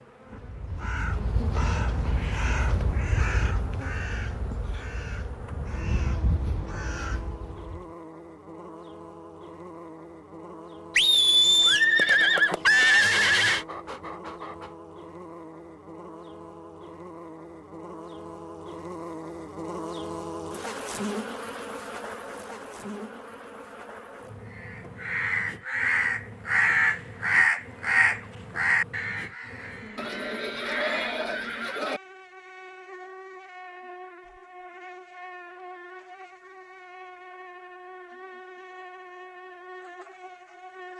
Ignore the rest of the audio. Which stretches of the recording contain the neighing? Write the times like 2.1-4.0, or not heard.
10.9-13.7, 29.9-32.0.